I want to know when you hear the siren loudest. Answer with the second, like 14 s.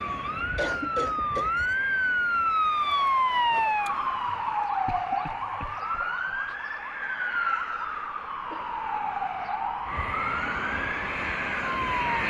3 s.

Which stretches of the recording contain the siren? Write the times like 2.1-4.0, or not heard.
0.0-12.2.